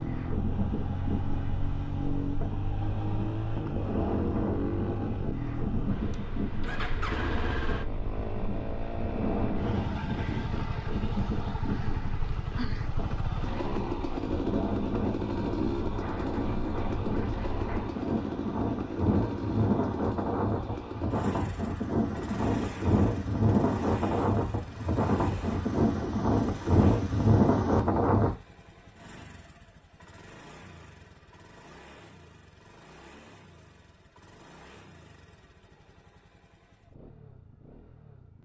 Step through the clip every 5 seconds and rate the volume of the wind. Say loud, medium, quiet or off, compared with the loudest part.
medium, medium, medium, medium, loud, loud, off, off.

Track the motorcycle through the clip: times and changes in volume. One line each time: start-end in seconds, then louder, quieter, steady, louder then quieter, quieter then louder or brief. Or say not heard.
0.0-38.4 quieter.